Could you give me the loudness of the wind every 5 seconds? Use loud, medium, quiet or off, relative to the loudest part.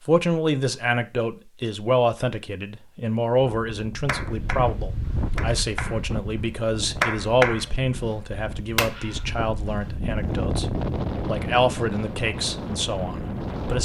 medium, medium, loud.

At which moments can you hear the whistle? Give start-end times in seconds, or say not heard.
not heard.